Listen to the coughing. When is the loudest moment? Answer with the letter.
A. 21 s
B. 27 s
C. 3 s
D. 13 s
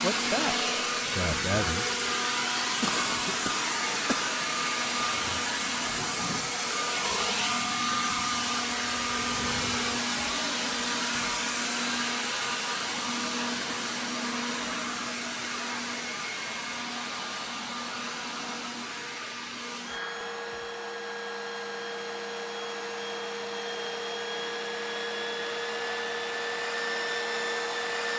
C.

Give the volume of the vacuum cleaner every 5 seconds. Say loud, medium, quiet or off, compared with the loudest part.
loud, loud, loud, medium, medium, loud.